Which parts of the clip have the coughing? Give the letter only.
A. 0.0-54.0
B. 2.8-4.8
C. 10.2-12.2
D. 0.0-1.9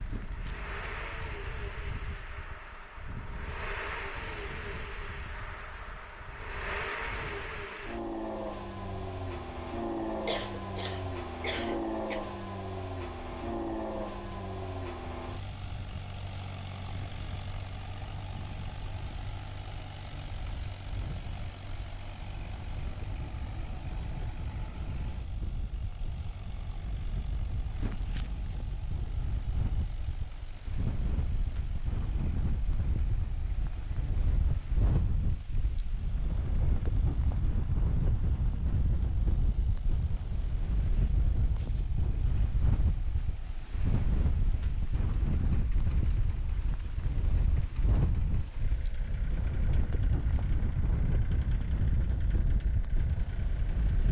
C.